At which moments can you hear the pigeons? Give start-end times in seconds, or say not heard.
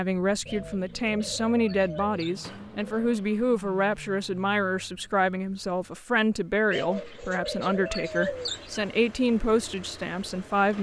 0.5-3.2, 6.7-8.9.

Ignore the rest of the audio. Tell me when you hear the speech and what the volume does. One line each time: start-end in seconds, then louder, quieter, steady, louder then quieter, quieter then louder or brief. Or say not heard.
0.0-10.7 steady.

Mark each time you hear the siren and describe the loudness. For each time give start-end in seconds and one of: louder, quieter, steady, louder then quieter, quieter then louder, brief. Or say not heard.
not heard.